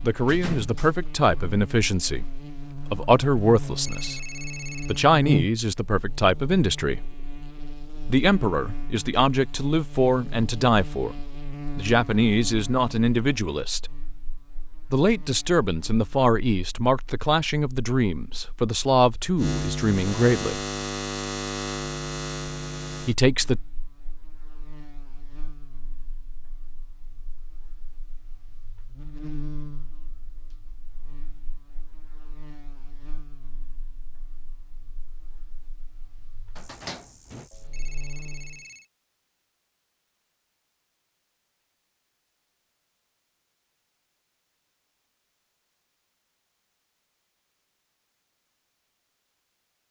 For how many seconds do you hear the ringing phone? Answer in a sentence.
You can hear the ringing phone for 3 seconds altogether.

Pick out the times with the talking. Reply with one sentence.
The talking can be heard from 0.0 to 7.0 s, from 8.1 to 11.2 s, from 11.8 to 13.9 s, from 14.9 to 20.6 s and from 23.1 to 23.6 s.